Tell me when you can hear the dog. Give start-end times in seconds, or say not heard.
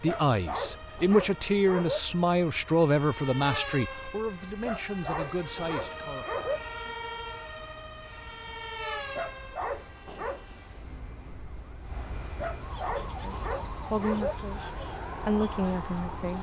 0.1-2.0, 4.6-6.6, 9.1-10.6, 12.3-14.3.